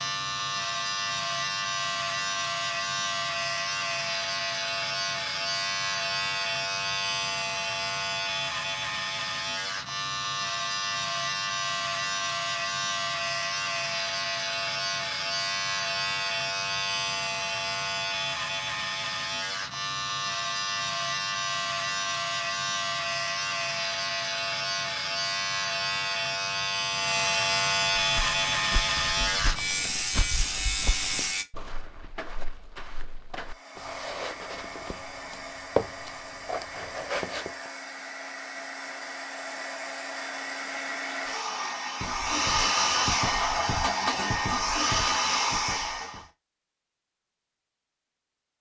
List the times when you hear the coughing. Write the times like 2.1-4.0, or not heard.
not heard.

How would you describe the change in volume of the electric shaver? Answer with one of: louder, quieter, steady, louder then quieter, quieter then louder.
steady.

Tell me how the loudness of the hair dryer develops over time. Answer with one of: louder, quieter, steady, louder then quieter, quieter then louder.
louder.